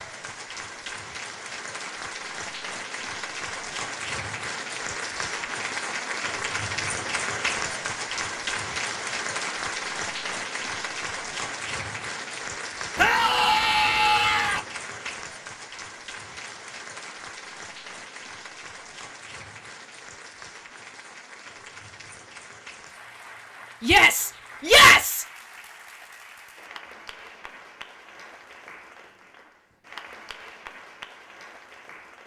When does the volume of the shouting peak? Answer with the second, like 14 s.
25 s.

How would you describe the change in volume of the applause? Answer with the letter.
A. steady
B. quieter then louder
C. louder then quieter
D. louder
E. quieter
E.